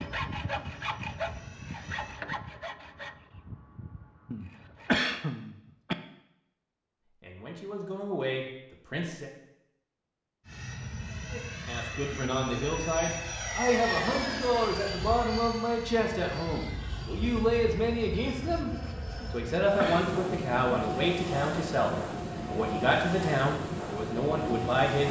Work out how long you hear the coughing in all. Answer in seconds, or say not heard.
3 s.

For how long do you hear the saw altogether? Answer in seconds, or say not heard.
5 s.